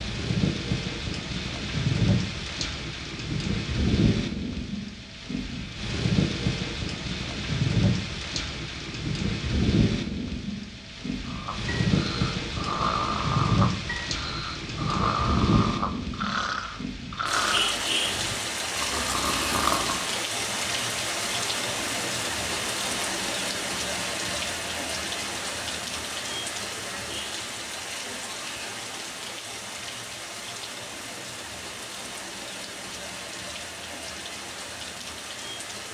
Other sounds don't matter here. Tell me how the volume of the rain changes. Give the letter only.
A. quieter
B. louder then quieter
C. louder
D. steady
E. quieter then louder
A.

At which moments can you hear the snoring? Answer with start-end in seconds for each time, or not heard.
11.2-20.1.